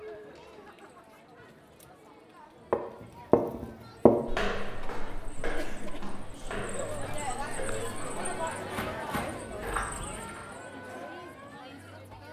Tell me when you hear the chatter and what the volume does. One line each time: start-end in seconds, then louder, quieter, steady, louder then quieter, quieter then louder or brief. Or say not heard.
0.0-12.2 louder then quieter.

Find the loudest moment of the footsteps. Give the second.
4 s.